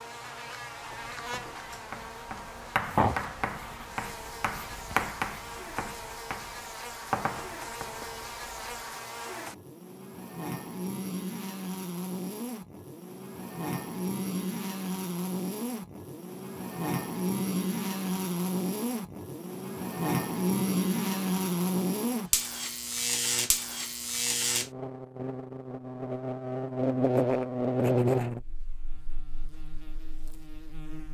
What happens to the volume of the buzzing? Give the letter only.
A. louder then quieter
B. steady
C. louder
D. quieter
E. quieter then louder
C.